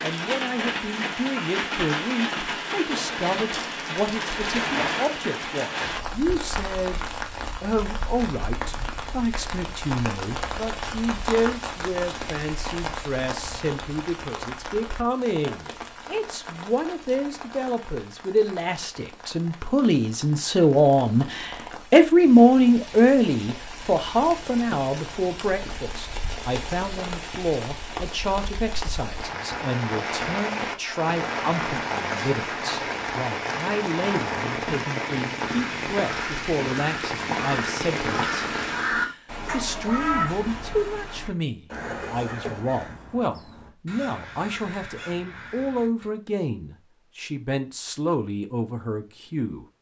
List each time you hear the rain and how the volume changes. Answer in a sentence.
The rain can be heard from 0.0 to 39.0 s, getting quieter then louder.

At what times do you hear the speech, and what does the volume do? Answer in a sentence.
You can hear the speech from 0.0 to 7.0 s, at a steady volume; and from 7.6 to 49.6 s, getting louder then quieter.